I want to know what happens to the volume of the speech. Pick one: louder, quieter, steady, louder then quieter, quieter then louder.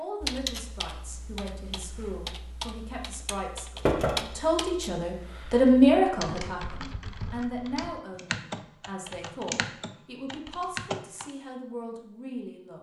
louder then quieter.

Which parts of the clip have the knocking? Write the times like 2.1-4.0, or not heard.
3.9-4.3.